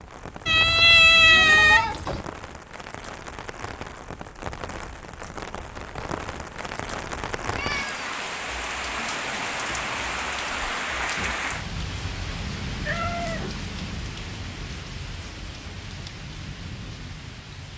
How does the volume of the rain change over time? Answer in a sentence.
The loudness of the rain goes up, then down.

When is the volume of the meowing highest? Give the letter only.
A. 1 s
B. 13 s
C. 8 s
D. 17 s
A.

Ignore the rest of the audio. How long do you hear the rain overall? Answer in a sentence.
You can hear the rain for 18 seconds altogether.